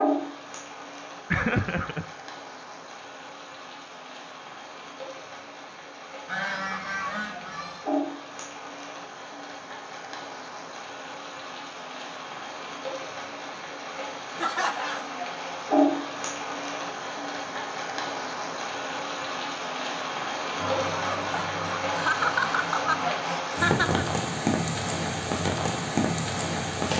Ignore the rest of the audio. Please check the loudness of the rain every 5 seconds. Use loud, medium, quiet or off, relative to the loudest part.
medium, medium, medium, loud, loud, loud.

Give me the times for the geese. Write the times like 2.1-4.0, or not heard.
6.2-7.8, 20.6-23.5.